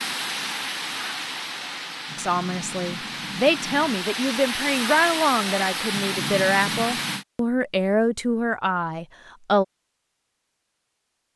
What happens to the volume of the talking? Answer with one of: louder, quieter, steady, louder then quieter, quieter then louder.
steady.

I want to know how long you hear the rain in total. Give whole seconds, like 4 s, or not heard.
7 s.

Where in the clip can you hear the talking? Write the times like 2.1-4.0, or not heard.
2.1-9.7.